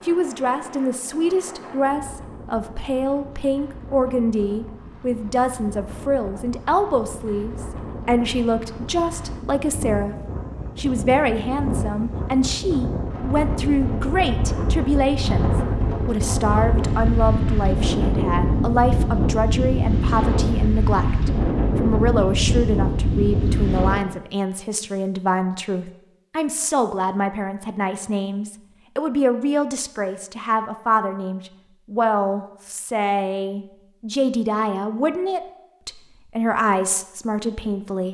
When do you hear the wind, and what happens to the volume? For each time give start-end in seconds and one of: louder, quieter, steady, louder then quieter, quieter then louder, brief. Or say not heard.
0.0-23.9 louder.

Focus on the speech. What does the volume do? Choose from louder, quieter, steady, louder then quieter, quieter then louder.
steady.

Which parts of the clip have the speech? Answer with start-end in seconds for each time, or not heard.
0.1-10.2, 10.8-38.0.